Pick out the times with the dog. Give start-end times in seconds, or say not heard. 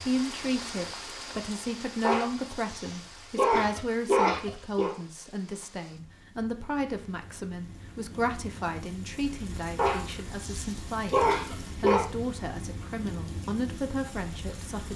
2.0-5.0, 9.8-12.1.